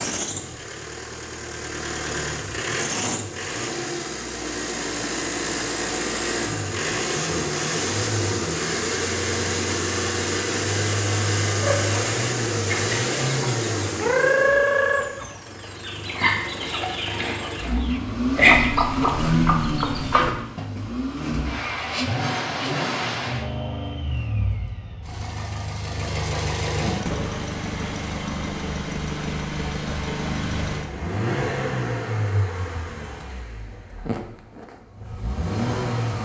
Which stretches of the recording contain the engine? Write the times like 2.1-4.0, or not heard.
0.0-36.2.